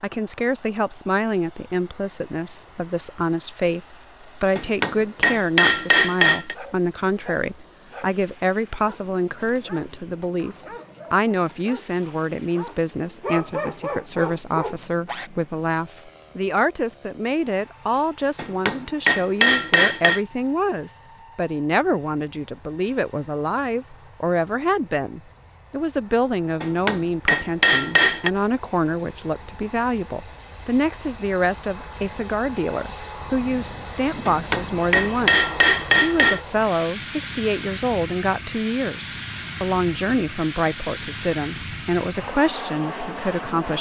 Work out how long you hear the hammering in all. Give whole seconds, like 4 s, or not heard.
8 s.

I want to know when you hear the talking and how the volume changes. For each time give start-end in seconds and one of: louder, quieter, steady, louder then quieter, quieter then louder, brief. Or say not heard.
0.0-43.7 steady.